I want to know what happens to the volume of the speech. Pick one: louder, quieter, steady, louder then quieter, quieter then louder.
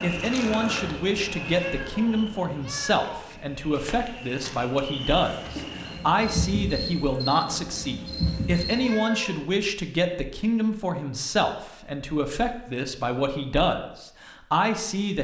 steady.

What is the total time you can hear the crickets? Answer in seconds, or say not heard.
9 s.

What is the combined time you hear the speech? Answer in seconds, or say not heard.
15 s.